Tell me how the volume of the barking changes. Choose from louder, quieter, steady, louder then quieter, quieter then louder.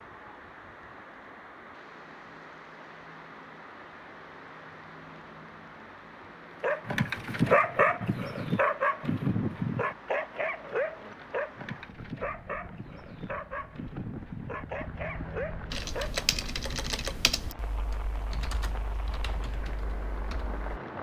quieter.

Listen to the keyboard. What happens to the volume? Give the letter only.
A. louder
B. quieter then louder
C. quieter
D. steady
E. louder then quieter
C.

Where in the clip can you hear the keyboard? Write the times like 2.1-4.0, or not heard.
15.7-20.8.